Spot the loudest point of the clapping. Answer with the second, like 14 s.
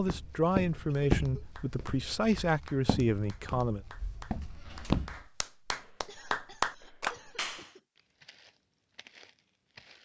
6 s.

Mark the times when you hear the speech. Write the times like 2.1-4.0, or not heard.
0.0-3.9.